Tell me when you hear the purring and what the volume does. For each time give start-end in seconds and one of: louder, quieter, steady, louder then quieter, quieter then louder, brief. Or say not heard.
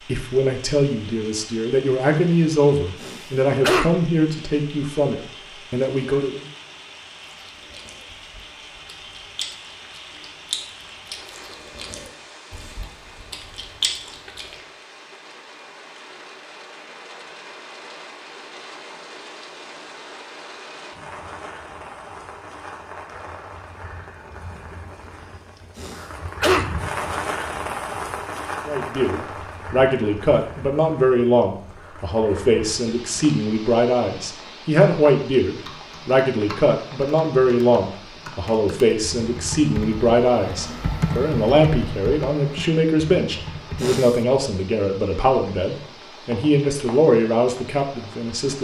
not heard.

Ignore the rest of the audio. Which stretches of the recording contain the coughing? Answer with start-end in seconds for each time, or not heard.
3.0-3.9, 25.8-26.6, 43.8-44.2.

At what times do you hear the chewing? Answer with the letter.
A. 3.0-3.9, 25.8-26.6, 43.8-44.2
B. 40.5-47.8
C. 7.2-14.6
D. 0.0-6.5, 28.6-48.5
C.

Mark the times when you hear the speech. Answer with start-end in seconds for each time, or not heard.
0.0-6.5, 28.6-48.5.